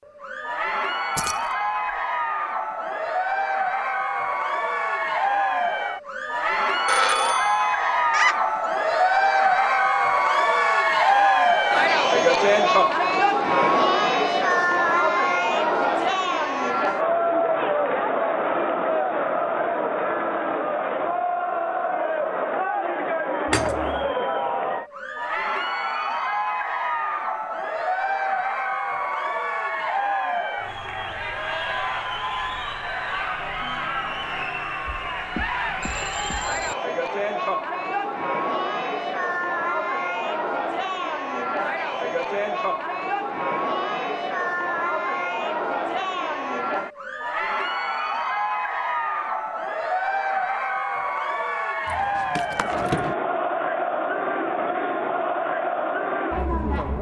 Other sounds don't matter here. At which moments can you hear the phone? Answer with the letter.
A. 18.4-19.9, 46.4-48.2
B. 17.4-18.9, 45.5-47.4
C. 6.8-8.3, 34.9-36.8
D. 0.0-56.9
C.